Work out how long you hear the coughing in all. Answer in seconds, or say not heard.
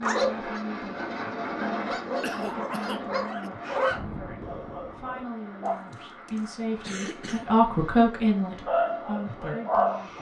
3 s.